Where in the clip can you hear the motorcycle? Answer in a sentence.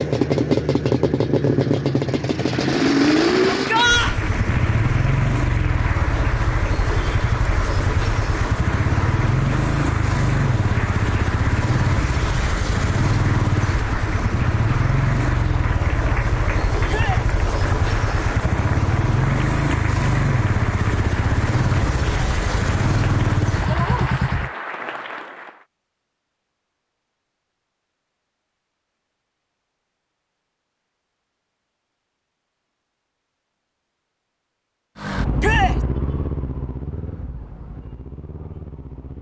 You can hear the motorcycle from 0.0 to 24.5 s and from 35.0 to 39.1 s.